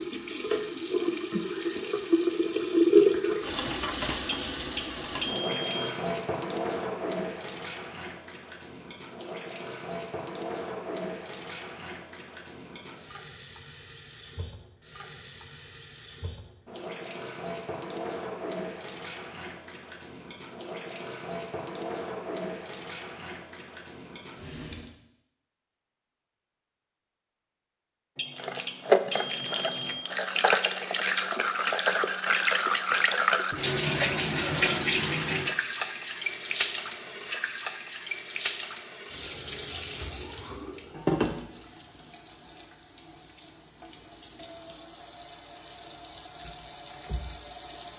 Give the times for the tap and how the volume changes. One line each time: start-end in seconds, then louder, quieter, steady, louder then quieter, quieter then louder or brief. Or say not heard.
0.0-24.9 quieter
28.4-47.9 quieter.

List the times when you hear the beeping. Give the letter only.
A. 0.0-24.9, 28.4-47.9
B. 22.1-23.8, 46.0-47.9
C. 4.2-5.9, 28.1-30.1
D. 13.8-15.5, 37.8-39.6
C.